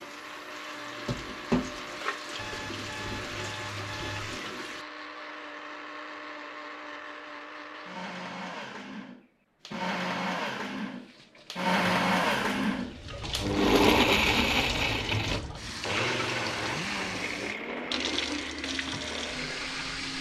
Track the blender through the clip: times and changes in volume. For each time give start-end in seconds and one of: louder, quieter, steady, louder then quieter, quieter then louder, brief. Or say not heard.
0.0-20.1 louder then quieter.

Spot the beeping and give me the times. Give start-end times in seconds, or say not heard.
2.4-4.4.